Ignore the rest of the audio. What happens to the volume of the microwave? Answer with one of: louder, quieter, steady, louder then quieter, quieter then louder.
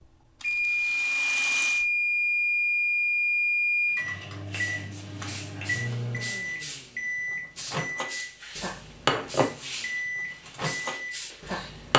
quieter.